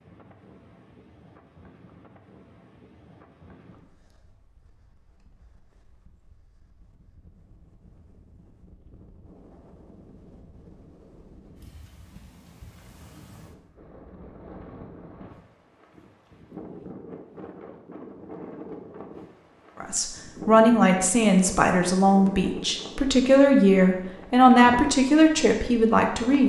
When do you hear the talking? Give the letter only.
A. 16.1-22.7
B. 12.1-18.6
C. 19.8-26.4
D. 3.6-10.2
C.